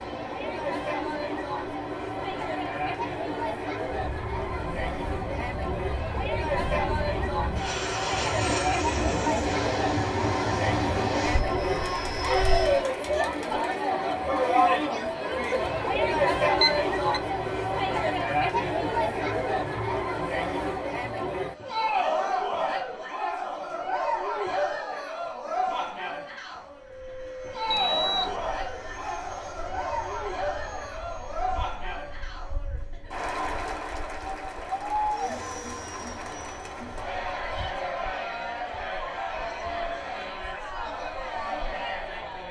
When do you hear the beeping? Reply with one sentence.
The beeping can be heard from 16.6 to 17.2 s and from 27.6 to 28.4 s.